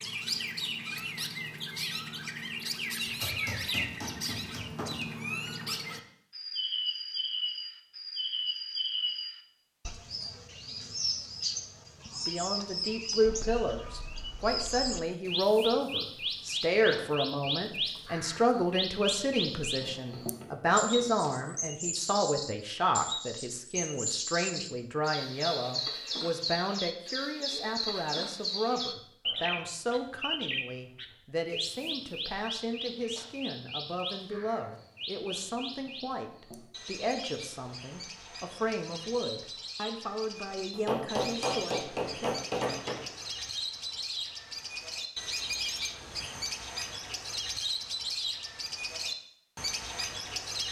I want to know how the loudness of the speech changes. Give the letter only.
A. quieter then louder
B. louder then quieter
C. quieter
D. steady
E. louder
C.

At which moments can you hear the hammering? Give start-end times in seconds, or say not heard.
3.0-5.0, 19.8-21.3, 40.7-43.0.